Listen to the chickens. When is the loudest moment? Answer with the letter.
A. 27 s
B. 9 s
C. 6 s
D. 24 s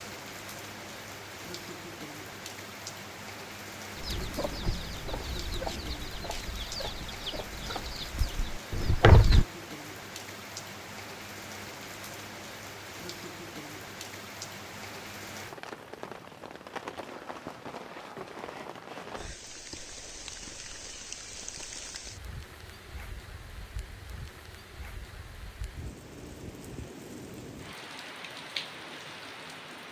B.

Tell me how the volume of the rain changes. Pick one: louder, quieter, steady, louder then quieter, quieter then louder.
steady.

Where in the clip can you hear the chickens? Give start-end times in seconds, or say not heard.
4.0-9.4.